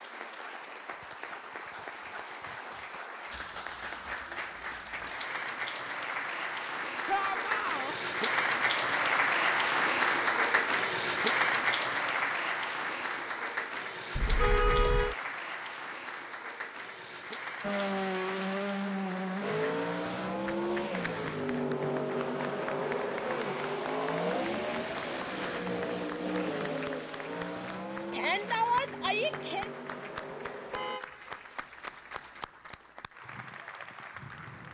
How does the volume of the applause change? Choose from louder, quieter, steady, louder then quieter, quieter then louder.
louder then quieter.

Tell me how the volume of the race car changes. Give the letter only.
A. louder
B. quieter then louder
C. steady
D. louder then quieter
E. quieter
E.